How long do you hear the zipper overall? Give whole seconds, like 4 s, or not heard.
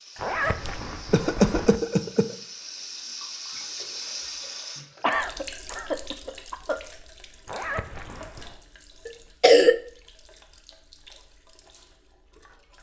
3 s.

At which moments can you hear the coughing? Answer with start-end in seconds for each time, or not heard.
0.5-2.4, 4.8-6.8, 9.1-9.8.